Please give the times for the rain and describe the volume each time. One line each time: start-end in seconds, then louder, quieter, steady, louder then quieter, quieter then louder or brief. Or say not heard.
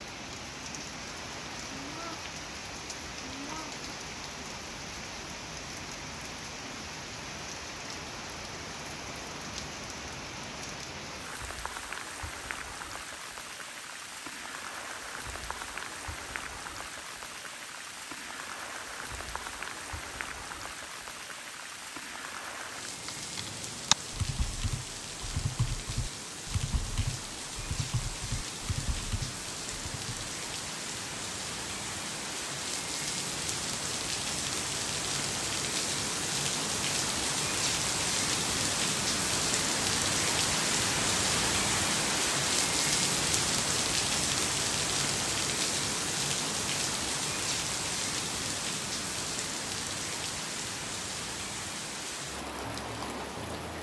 0.0-53.7 louder.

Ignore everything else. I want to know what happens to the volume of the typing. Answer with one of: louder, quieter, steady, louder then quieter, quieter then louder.
quieter.